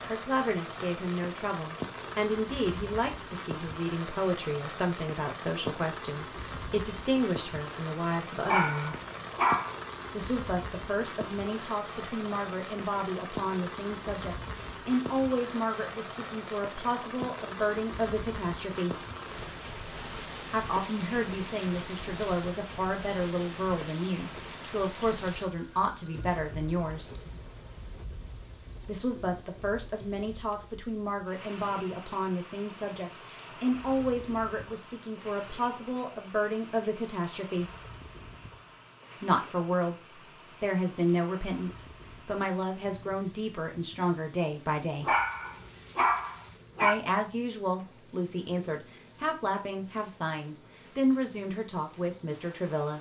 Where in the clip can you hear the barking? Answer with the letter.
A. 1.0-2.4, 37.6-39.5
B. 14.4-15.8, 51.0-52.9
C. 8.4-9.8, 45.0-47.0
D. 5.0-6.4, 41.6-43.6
C.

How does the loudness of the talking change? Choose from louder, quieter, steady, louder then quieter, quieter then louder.
steady.